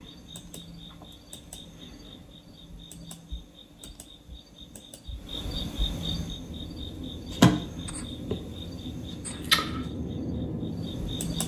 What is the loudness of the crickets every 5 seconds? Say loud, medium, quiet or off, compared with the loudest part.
quiet, loud, medium.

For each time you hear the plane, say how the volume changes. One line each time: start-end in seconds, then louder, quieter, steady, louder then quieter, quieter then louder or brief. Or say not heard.
6.2-11.4 louder.